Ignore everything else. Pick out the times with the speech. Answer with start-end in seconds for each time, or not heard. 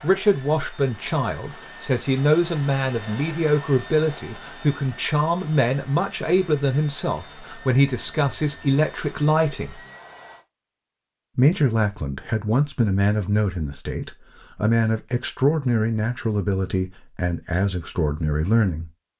0.0-9.8, 11.3-18.9.